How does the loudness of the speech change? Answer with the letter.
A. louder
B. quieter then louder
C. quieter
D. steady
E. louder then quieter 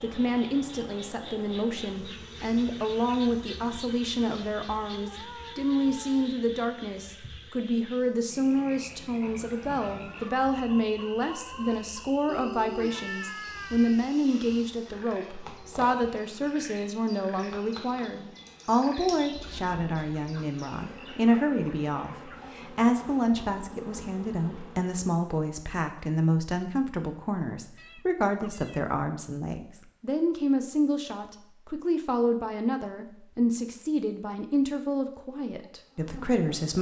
D.